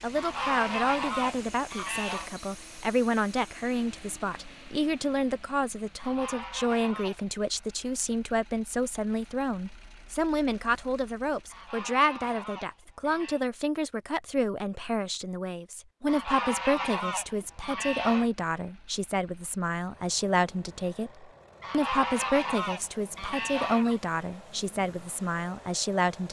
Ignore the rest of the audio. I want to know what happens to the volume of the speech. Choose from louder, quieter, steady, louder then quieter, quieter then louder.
steady.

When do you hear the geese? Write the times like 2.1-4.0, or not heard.
0.1-2.3, 6.0-7.3, 11.4-13.4, 16.1-18.3, 21.6-24.0.